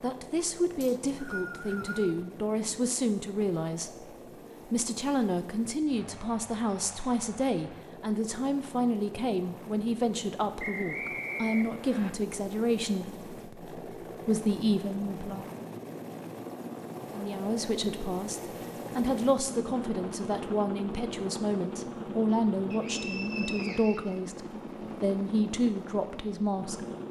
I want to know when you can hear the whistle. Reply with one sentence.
You can hear the whistle from 0.8 to 2.1 s, from 10.6 to 12.1 s and from 22.7 to 24.2 s.